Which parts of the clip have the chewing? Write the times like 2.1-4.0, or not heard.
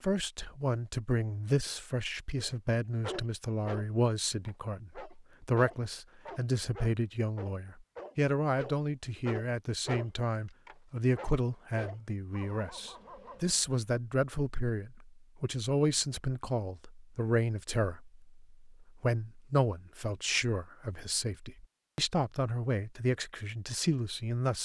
not heard.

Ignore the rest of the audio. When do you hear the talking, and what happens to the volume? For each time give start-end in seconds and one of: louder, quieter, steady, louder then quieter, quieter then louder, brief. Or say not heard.
0.0-24.6 steady.